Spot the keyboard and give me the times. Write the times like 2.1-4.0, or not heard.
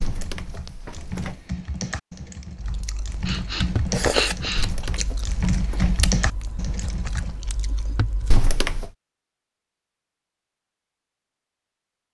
0.0-7.3.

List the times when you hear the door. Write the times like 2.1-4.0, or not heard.
0.0-1.4, 4.5-6.0, 8.3-8.9.